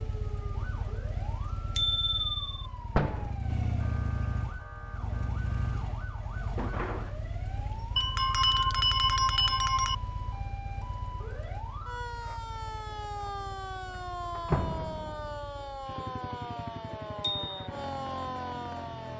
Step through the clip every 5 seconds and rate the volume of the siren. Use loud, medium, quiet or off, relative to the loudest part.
medium, medium, loud, loud.